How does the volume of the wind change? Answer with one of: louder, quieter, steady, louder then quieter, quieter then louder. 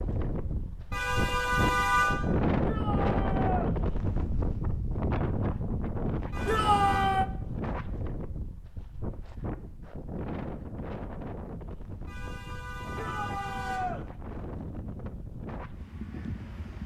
quieter.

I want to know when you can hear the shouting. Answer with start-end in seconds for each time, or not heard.
2.6-3.7, 6.5-7.2, 12.9-14.1.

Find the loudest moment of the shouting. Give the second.
7 s.